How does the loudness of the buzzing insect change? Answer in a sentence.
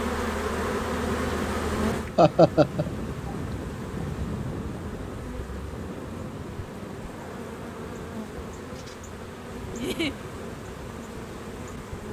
The loudness of the buzzing insect goes down.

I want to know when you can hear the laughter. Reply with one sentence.
The laughter can be heard from 2.1 to 2.9 s and from 9.8 to 10.2 s.